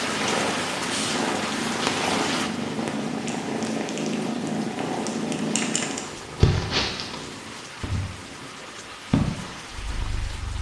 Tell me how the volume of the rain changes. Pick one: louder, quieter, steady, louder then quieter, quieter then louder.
quieter.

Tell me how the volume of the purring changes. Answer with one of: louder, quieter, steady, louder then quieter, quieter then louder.
steady.